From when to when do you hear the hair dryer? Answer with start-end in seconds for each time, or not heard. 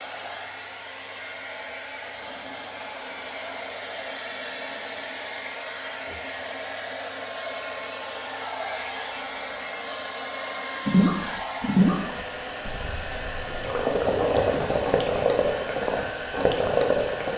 0.0-17.3.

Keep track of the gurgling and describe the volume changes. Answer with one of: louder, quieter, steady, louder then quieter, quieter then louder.
quieter then louder.